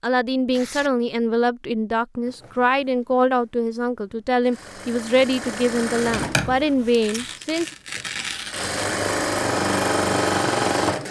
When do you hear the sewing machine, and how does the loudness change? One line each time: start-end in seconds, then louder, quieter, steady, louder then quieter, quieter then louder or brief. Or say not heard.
2.2-11.0 louder.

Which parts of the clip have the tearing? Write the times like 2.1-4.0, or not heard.
0.5-0.9, 7.0-8.8.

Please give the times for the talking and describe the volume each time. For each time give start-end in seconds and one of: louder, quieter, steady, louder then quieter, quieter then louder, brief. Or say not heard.
0.0-7.7 steady.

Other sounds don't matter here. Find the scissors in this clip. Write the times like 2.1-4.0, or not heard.
6.0-7.2.